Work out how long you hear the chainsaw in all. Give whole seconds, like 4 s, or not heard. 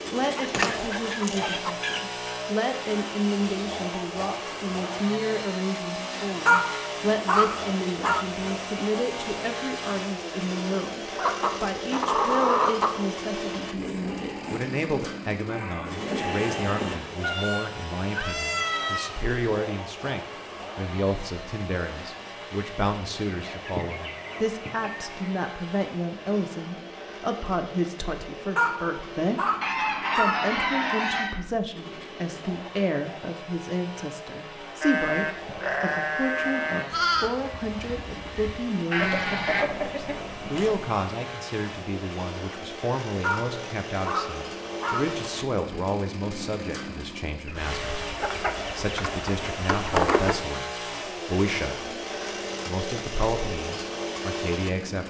55 s.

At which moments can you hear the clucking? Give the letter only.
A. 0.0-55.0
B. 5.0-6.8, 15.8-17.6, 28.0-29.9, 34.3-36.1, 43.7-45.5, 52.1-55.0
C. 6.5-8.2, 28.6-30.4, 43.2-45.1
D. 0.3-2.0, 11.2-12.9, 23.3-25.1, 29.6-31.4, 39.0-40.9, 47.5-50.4
D.